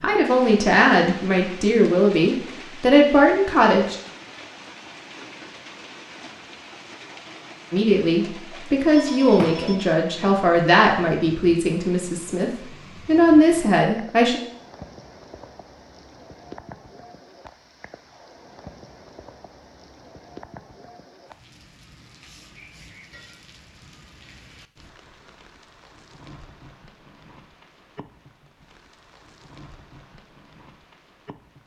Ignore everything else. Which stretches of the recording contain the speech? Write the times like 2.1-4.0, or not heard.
0.0-4.0, 7.7-14.4.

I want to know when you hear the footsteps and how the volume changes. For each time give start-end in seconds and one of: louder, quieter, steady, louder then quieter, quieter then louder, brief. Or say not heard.
not heard.